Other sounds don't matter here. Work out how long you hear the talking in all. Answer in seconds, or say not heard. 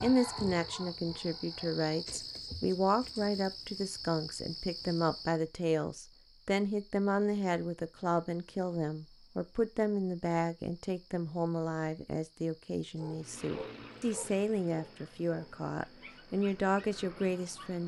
18 s.